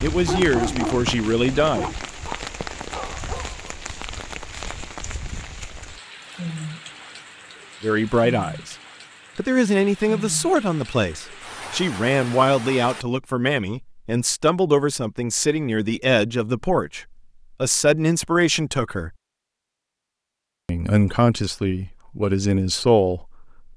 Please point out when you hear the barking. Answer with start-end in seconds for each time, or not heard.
0.0-3.6.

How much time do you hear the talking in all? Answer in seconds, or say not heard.
16 s.